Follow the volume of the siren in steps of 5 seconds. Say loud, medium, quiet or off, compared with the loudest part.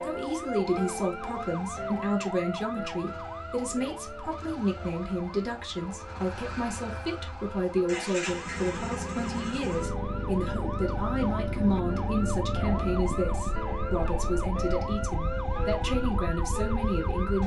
loud, medium, loud, loud.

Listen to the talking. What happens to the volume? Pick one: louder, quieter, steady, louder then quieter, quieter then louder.
steady.